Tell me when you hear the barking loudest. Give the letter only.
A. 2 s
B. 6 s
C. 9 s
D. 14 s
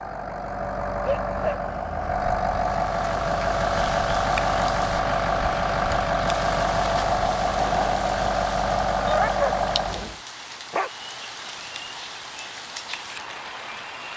C.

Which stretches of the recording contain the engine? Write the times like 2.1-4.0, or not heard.
0.0-10.2.